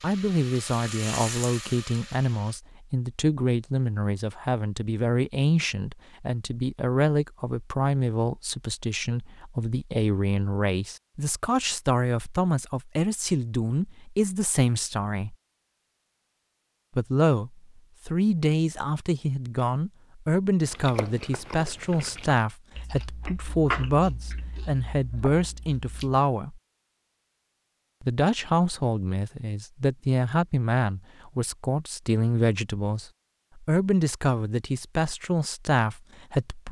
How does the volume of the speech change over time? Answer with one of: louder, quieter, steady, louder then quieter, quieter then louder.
steady.